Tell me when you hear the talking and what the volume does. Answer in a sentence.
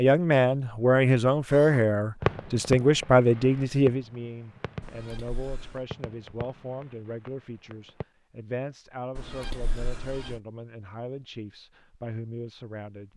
The talking can be heard from 0.0 to 13.1 s, getting quieter.